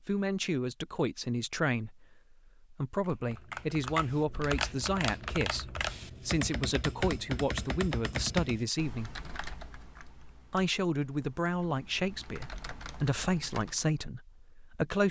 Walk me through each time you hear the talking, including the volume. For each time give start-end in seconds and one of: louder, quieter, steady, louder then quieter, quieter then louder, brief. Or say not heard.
0.1-9.1 steady
10.5-15.0 steady.